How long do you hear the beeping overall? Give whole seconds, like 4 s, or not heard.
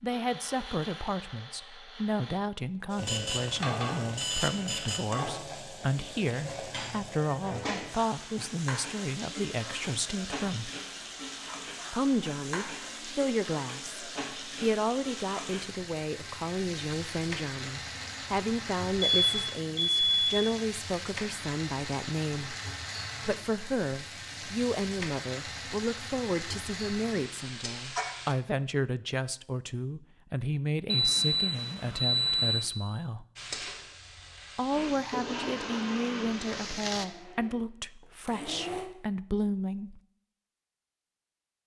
5 s.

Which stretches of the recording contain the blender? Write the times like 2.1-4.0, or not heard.
0.0-2.5, 34.7-38.9.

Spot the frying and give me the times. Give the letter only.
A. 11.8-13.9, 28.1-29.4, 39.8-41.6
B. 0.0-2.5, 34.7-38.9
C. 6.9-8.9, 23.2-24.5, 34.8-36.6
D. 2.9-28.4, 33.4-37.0
D.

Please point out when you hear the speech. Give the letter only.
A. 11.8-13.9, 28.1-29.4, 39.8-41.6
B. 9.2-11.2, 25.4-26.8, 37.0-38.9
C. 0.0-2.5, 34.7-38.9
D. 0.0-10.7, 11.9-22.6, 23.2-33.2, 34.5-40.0
D.